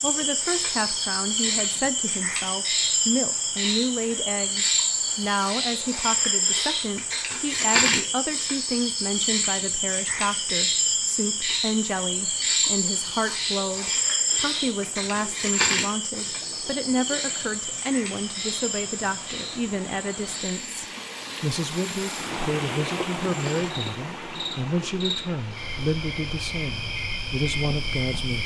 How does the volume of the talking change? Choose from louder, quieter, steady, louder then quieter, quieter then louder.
steady.